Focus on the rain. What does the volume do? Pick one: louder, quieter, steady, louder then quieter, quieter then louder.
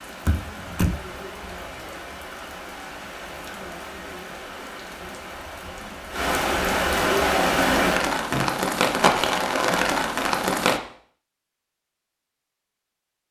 louder.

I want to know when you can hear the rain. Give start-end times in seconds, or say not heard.
0.0-10.8.